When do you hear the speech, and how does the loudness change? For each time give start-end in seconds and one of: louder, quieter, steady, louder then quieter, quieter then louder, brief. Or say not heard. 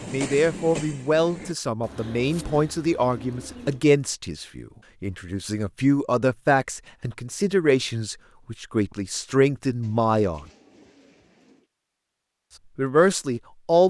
0.0-10.4 steady
12.8-13.8 brief.